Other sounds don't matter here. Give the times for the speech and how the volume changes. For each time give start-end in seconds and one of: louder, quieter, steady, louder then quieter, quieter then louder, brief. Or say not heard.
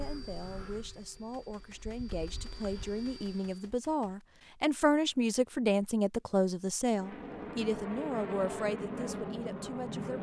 0.0-10.1 louder then quieter.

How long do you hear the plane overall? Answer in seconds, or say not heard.
7 s.